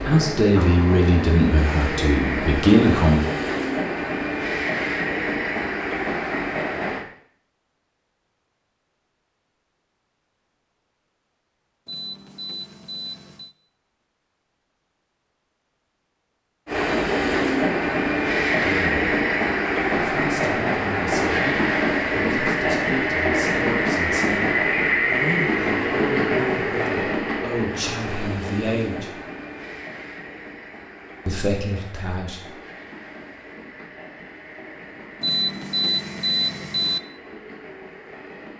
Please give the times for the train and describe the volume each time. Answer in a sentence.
You can hear the train from 0.0 to 7.0 s, at a steady volume; and from 16.6 to 38.5 s, getting quieter.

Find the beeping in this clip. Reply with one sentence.
The beeping can be heard from 11.8 to 13.6 s and from 35.2 to 37.0 s.